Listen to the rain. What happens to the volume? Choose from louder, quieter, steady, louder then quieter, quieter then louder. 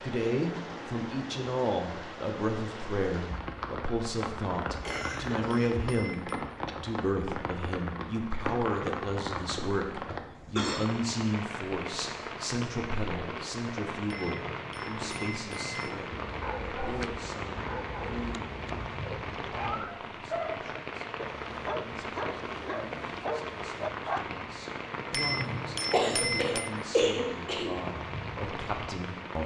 steady.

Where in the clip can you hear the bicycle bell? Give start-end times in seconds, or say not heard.
4.8-6.5, 14.1-16.0, 25.1-26.7.